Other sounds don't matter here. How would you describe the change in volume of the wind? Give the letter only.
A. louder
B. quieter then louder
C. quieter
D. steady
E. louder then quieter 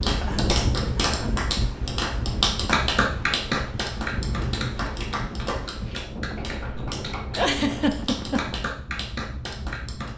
C.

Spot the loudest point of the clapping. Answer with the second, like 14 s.
3 s.